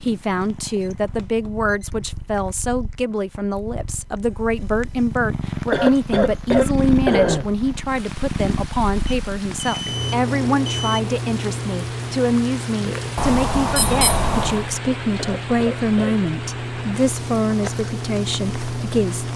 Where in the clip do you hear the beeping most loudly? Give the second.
14 s.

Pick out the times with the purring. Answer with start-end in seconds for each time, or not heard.
0.0-19.3.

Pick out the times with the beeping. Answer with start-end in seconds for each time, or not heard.
0.7-1.9, 9.1-11.0, 13.2-14.7.